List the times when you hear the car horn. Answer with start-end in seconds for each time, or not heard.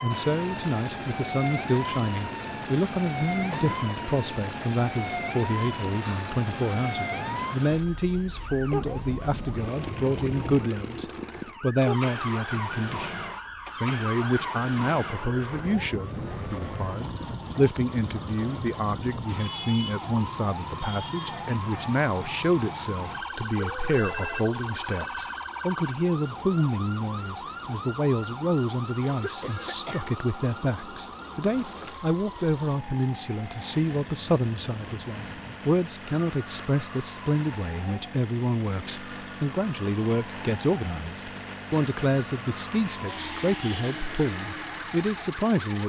not heard.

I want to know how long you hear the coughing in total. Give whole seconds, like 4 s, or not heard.
2 s.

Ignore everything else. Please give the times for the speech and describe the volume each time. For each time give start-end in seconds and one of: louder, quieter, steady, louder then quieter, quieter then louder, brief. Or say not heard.
0.0-45.8 steady.